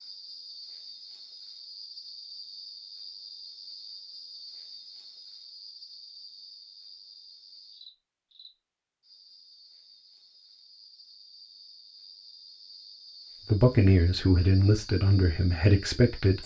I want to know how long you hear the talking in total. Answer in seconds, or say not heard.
3 s.